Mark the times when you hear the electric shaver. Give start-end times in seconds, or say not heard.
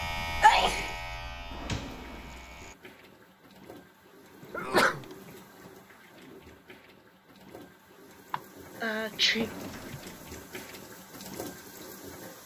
0.0-2.8.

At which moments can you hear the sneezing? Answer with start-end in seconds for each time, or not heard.
0.0-0.9, 4.5-5.0, 8.3-10.0.